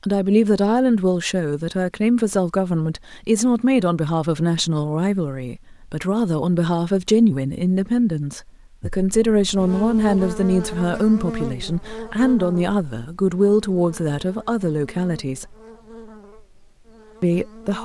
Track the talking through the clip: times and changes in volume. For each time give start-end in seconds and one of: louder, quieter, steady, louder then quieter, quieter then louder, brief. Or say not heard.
0.0-15.4 steady
17.2-17.8 brief.